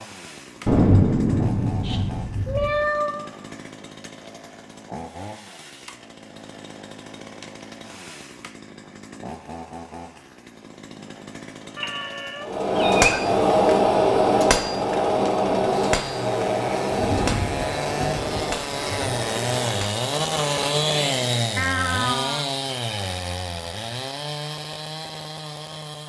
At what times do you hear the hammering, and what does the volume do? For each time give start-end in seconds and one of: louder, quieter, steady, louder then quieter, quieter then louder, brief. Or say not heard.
12.4-21.4 quieter.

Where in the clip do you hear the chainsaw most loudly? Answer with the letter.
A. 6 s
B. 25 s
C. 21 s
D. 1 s
C.